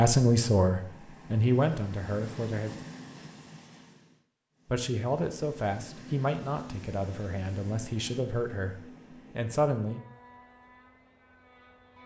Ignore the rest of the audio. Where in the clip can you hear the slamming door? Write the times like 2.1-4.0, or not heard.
not heard.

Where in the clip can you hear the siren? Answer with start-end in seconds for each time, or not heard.
not heard.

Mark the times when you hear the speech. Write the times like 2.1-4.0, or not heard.
0.0-2.8, 4.7-10.0.